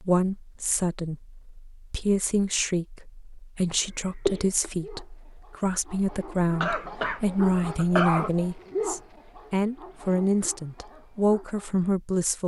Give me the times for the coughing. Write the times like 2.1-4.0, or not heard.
4.2-4.7, 6.6-8.3.